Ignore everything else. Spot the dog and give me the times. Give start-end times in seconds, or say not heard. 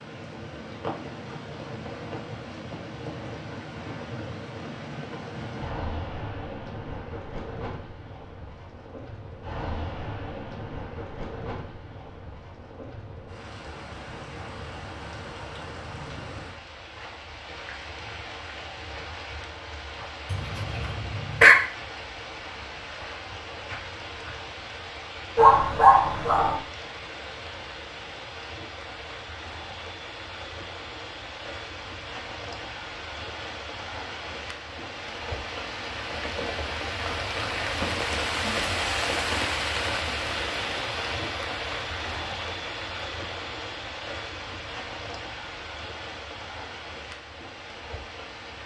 20.3-21.6, 25.4-26.6.